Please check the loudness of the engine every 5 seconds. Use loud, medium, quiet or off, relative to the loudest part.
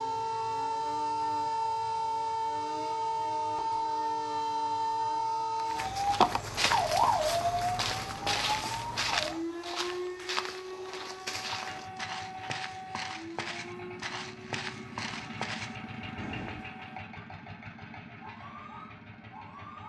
off, off, loud, loud.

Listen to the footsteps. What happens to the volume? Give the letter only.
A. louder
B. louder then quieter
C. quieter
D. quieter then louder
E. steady
C.